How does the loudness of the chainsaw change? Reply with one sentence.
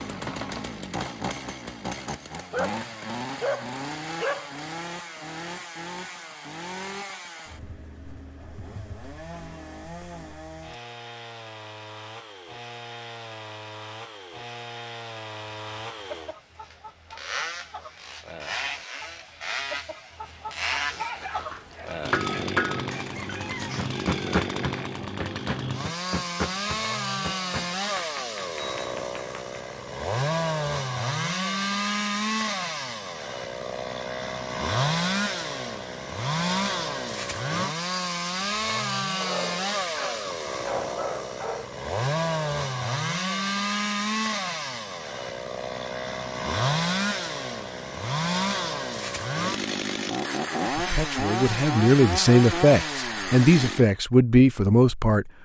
The loudness of the chainsaw goes up.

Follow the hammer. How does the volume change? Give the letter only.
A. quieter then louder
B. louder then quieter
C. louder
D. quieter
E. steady
D.